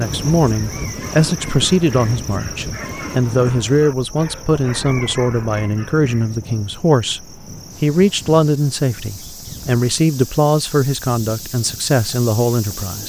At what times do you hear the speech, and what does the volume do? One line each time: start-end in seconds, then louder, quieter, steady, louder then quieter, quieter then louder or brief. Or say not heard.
0.0-13.0 steady.